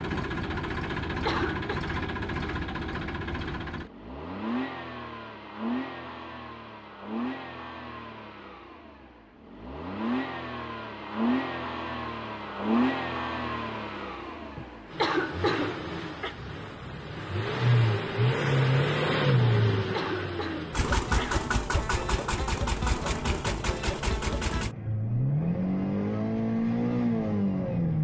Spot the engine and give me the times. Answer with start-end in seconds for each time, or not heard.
0.0-27.9.